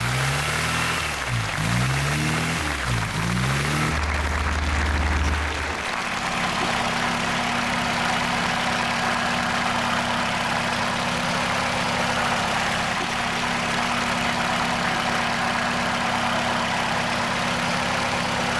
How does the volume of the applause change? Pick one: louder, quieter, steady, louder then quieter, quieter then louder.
steady.